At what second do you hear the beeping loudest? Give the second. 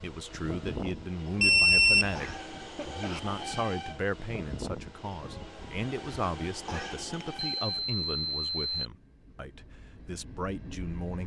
2 s.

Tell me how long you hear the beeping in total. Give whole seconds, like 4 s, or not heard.
2 s.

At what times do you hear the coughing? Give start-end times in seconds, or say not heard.
2.1-3.2, 6.7-7.1.